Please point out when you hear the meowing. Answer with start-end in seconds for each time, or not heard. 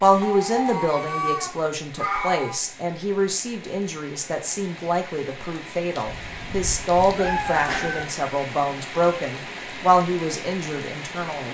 0.2-2.6, 6.0-8.1.